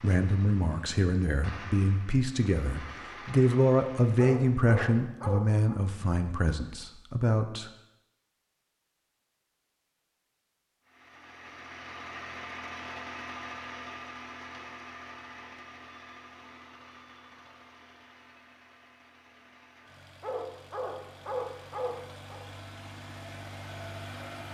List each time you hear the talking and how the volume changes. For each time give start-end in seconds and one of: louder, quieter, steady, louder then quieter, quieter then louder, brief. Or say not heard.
0.0-7.7 louder then quieter.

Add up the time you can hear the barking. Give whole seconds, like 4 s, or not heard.
4 s.